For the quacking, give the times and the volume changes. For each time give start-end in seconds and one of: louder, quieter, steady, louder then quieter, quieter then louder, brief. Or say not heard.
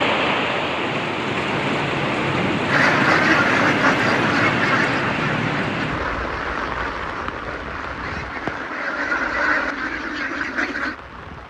2.6-10.9 quieter then louder.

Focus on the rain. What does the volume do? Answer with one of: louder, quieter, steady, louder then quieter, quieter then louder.
quieter.